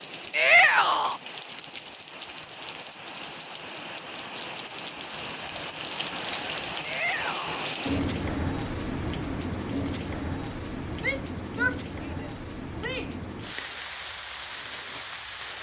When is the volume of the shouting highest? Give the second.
1 s.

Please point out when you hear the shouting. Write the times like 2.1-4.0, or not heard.
0.3-1.2, 6.8-7.7, 11.0-13.2.